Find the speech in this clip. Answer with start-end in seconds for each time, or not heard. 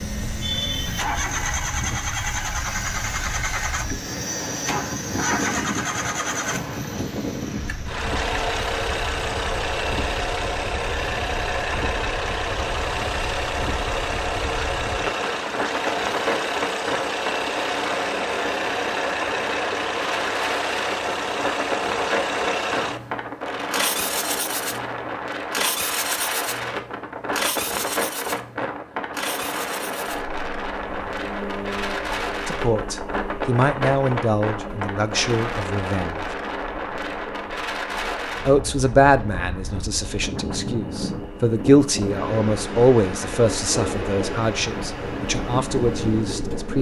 32.5-36.2, 38.5-46.7.